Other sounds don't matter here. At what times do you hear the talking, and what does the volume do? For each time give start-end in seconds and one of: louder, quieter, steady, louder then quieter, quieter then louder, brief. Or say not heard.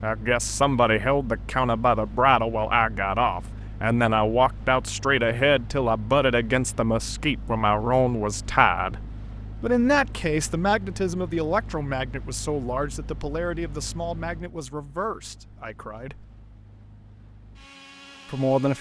0.0-9.0 steady
9.6-16.2 quieter
18.2-18.7 brief.